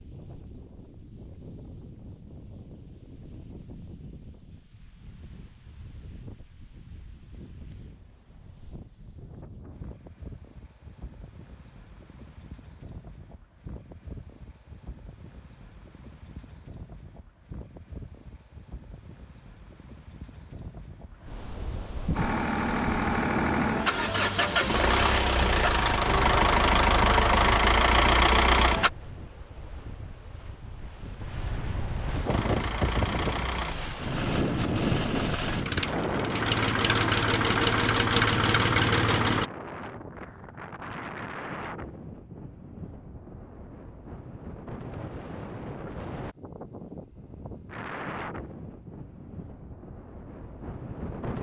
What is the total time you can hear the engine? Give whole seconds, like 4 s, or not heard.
14 s.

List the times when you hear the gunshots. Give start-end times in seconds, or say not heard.
not heard.